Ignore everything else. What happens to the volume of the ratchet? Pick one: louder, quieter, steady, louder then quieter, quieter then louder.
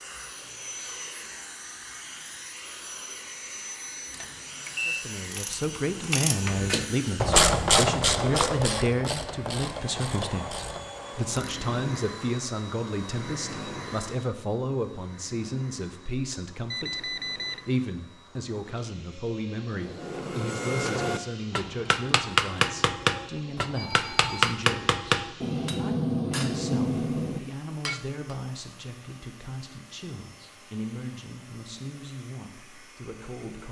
louder then quieter.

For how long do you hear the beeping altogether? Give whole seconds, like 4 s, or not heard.
3 s.